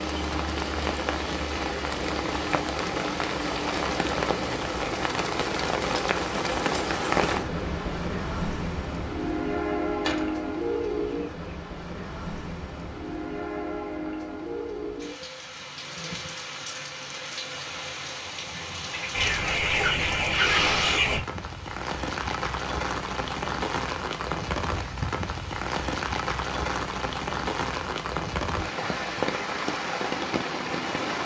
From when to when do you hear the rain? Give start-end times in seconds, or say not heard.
0.0-31.2.